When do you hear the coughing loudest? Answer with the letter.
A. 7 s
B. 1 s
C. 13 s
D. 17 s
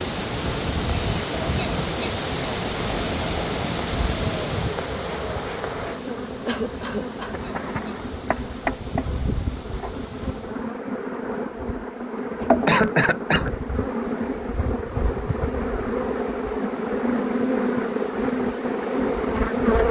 C.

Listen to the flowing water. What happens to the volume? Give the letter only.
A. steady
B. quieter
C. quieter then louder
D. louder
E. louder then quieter
B.